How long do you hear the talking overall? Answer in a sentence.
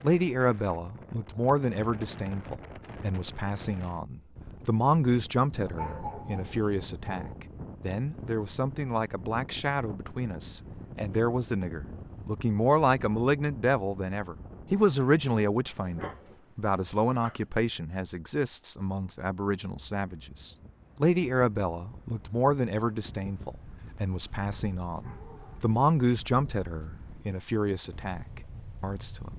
You can hear the talking for 29 seconds altogether.